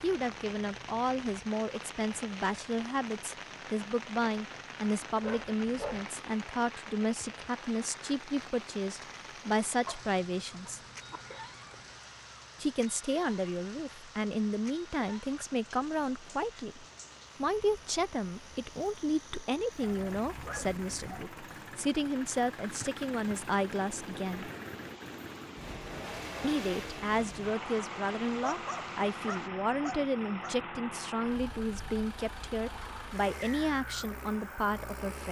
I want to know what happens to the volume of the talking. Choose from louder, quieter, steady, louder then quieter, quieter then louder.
steady.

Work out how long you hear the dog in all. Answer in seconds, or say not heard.
6 s.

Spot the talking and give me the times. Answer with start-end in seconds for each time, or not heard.
0.0-10.8, 12.6-24.5, 26.4-35.2.